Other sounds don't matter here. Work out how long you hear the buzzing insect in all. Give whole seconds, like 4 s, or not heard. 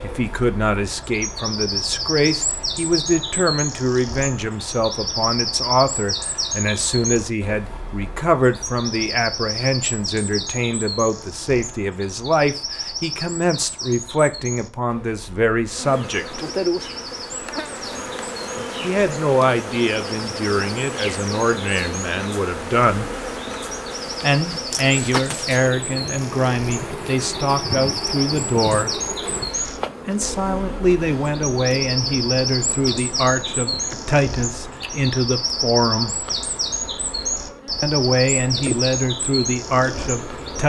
25 s.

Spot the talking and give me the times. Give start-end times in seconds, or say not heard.
0.0-16.4, 18.8-23.1, 24.2-29.0, 30.1-36.2, 37.8-40.6.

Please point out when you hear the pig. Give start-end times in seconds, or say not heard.
not heard.